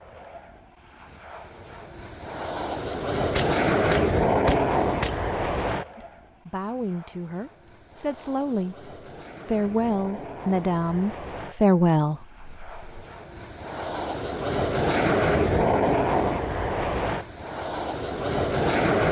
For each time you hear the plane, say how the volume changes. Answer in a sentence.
You can hear the plane from 0.0 to 19.0 s, getting quieter then louder.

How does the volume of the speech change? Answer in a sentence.
The volume of the speech goes up.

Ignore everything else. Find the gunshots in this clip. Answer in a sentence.
You can hear the gunshots from 2.9 to 5.2 s.